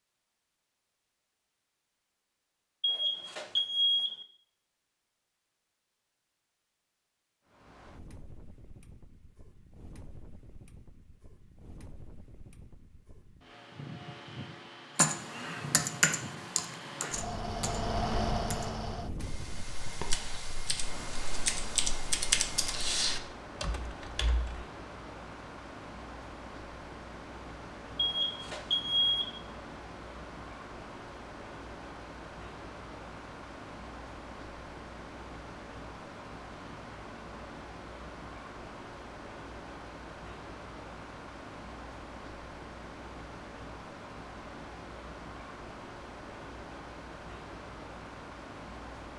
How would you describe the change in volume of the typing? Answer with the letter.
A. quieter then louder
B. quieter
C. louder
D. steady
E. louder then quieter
A.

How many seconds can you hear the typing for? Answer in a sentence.
The typing can be heard for 10 seconds in total.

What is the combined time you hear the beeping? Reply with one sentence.
The beeping can be heard for 3 seconds in total.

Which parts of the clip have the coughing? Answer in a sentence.
You can't hear the coughing here.